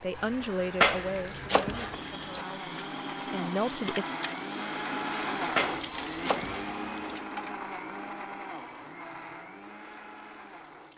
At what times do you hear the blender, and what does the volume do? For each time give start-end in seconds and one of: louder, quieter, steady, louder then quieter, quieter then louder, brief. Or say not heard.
0.0-10.9 louder then quieter.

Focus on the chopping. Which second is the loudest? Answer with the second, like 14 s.
1 s.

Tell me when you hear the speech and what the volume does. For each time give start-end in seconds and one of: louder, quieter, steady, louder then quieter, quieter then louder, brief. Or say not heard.
0.0-4.0 quieter then louder.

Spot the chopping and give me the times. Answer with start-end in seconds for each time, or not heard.
0.8-2.5, 5.5-7.2.